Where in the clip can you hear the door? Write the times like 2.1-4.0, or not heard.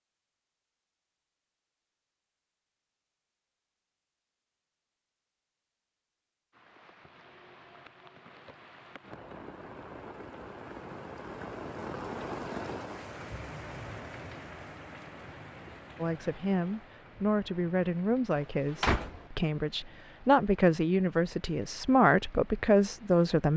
18.4-19.2.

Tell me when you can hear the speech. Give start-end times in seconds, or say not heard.
15.9-23.5.